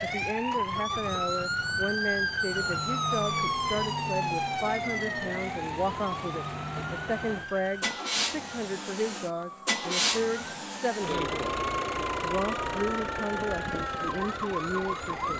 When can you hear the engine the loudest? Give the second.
10 s.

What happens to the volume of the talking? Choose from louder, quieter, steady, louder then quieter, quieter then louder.
steady.